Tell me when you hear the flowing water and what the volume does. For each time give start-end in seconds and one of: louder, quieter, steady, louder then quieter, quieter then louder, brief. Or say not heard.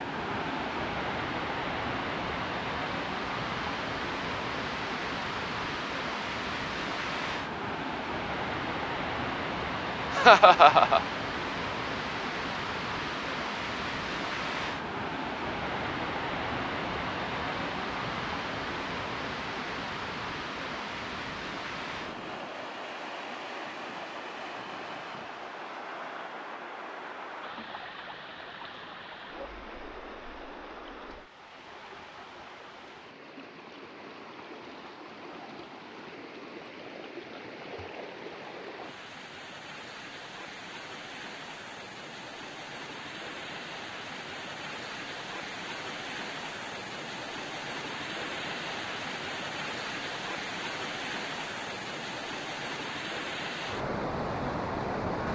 0.0-55.3 quieter then louder.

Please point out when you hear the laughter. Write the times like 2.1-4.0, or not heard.
10.1-11.0.